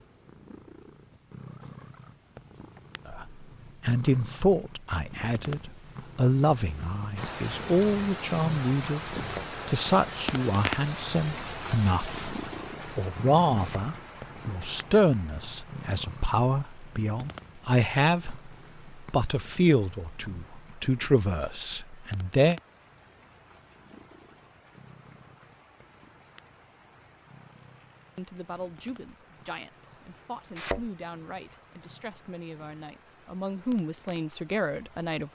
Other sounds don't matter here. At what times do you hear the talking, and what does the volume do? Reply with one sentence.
You can hear the talking from 3.0 to 22.6 s, at a steady volume; and from 28.1 to 35.3 s, getting louder.